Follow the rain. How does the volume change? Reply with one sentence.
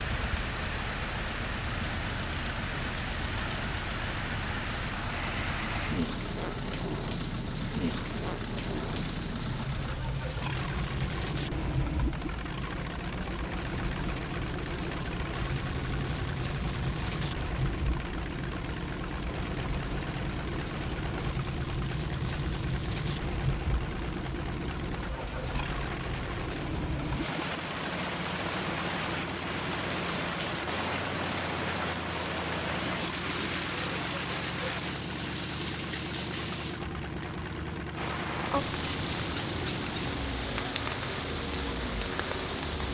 The volume of the rain stays about the same.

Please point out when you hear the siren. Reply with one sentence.
You can't hear the siren here.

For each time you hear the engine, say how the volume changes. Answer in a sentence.
The engine can be heard from 0.0 to 42.8 s, at a steady volume.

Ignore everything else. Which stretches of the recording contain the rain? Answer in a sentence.
The rain can be heard from 0.0 to 42.8 s.